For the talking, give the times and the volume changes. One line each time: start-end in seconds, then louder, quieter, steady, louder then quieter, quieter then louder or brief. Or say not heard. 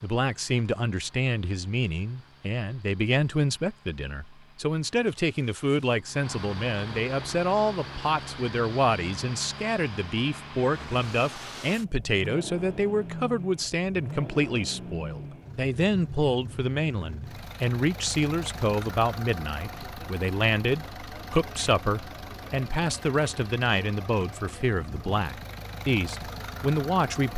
0.0-27.3 steady.